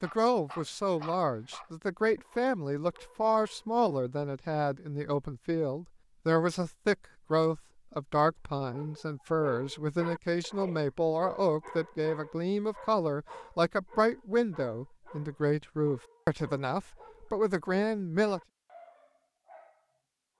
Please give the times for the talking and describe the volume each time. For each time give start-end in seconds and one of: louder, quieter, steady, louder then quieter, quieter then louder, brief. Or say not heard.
0.0-18.4 steady.